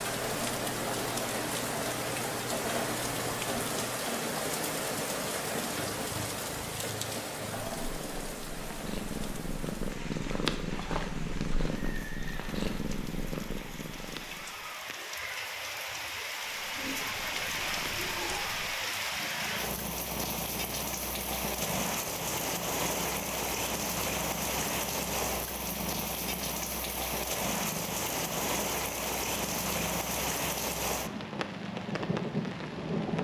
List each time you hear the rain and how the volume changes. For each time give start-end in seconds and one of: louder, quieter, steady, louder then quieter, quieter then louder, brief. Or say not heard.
0.0-33.2 quieter then louder.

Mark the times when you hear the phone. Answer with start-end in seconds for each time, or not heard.
not heard.